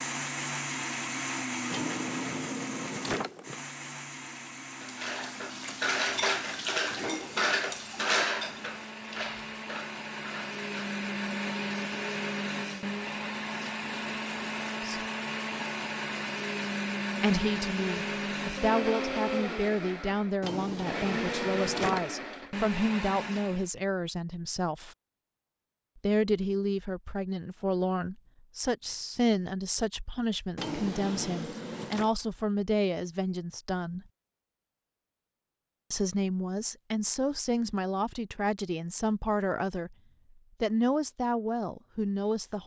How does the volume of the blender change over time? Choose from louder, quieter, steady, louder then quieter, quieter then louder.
quieter then louder.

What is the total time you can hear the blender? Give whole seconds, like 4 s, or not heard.
24 s.